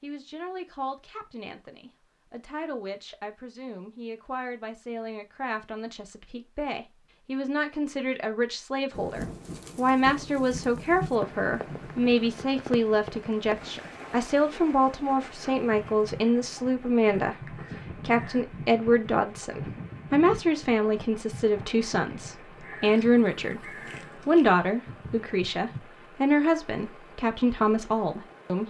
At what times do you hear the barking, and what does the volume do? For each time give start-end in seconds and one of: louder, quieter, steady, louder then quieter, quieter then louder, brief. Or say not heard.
not heard.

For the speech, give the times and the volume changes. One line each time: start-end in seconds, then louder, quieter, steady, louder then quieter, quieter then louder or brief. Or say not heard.
0.0-28.6 louder.